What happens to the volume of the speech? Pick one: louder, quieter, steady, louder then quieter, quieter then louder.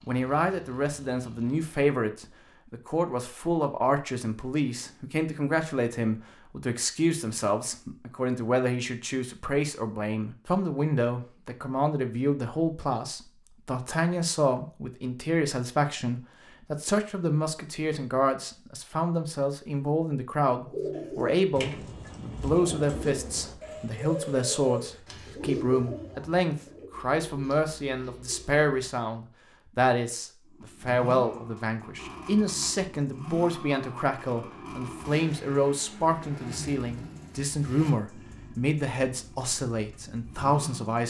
steady.